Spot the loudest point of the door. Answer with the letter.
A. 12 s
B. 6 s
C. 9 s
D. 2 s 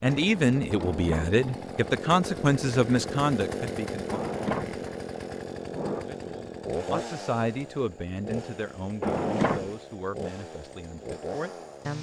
C.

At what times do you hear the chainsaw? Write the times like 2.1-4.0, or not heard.
0.0-11.9.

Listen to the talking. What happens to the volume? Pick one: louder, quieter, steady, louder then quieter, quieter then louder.
quieter.